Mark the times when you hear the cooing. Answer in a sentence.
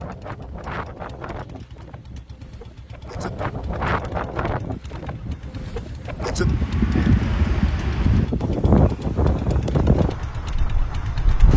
The cooing can't be heard in this clip.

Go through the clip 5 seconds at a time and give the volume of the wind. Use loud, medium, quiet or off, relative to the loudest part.
medium, loud, medium.